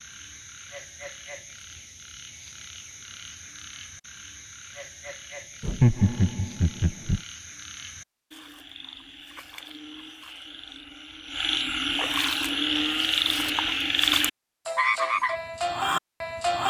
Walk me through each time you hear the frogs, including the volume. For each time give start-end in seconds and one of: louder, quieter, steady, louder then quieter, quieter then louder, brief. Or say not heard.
0.0-16.6 louder.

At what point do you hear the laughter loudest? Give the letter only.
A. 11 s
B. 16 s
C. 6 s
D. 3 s
C.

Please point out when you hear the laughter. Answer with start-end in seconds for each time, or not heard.
5.6-7.2.